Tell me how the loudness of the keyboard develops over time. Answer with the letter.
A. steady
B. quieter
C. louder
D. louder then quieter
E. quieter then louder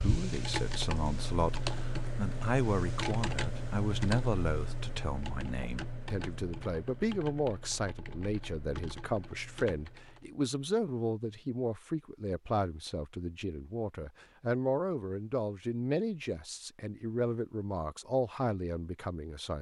B.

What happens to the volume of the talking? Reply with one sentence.
The volume of the talking stays about the same.